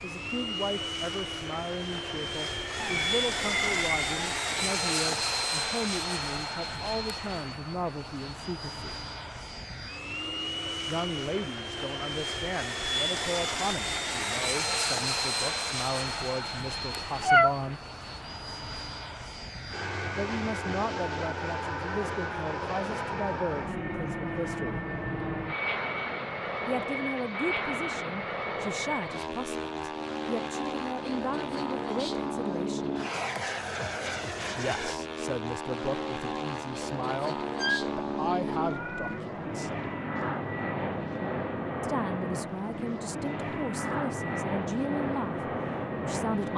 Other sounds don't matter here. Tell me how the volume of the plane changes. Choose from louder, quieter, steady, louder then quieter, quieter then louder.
steady.